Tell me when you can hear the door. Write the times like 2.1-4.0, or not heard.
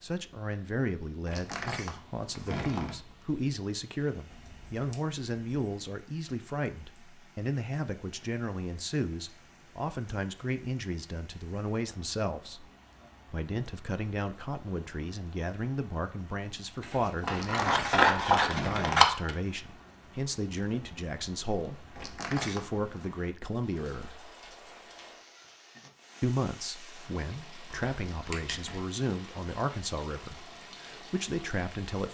1.2-3.2, 17.3-19.1, 21.9-22.9.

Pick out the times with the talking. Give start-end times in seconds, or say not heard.
0.0-12.7, 13.3-24.3, 26.2-32.0.